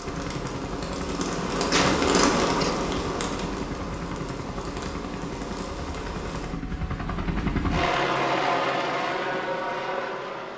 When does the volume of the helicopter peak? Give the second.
8 s.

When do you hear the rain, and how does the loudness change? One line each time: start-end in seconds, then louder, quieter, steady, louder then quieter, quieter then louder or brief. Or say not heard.
0.0-6.6 louder then quieter.